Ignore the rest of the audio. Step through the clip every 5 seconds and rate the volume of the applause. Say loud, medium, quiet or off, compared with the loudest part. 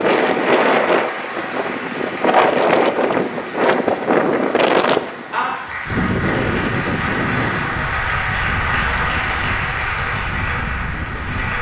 medium, loud, loud.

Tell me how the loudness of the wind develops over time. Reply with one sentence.
The loudness of the wind goes down.